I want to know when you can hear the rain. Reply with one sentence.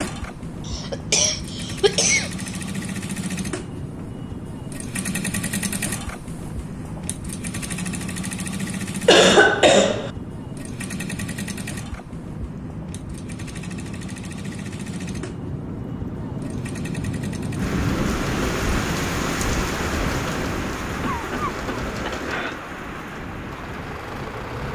You can hear the rain from 0.0 to 24.7 s.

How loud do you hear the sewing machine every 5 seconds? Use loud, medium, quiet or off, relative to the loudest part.
loud, loud, medium, medium, loud.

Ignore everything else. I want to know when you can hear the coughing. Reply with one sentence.
You can hear the coughing from 0.7 to 2.5 s, from 9.1 to 10.1 s and from 21.0 to 22.6 s.